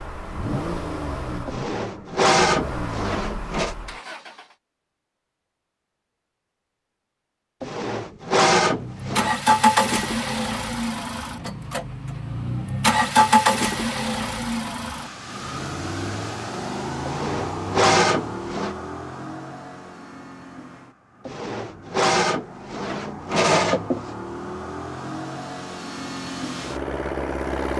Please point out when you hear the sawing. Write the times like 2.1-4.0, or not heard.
1.4-3.8, 7.6-9.3, 17.1-18.8, 21.2-24.1.